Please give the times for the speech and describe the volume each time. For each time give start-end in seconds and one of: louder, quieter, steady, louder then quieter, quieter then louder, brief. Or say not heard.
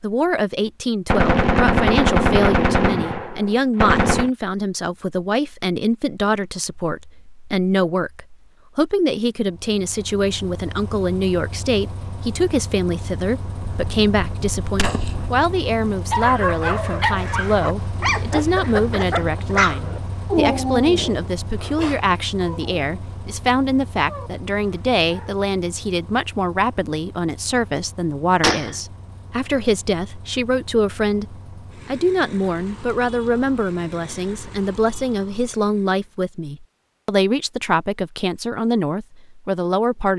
0.0-40.1 steady.